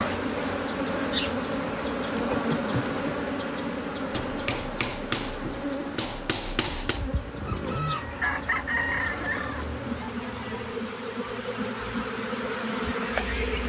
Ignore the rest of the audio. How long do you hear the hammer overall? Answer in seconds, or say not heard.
3 s.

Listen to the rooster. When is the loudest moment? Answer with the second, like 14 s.
9 s.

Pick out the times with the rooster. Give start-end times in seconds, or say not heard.
7.4-10.8.